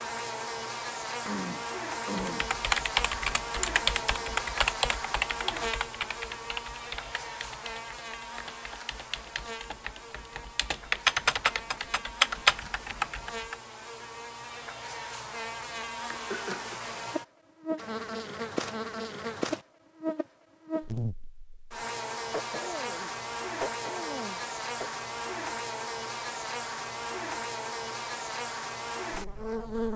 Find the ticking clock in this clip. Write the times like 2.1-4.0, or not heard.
not heard.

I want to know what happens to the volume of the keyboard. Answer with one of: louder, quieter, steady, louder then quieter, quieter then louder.
quieter then louder.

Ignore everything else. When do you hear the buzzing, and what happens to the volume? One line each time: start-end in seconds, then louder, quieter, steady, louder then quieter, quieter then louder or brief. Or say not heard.
0.0-29.9 quieter then louder.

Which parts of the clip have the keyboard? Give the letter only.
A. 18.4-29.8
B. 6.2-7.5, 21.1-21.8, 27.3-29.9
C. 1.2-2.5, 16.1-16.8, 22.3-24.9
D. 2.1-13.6
D.